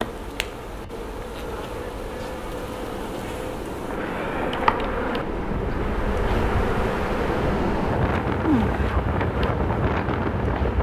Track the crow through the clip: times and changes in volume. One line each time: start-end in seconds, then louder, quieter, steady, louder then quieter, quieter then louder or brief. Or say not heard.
not heard.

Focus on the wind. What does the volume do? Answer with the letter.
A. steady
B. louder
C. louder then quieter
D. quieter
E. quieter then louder
B.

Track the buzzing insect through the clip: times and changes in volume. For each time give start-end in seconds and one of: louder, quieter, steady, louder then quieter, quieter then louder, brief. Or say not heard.
0.0-10.7 louder.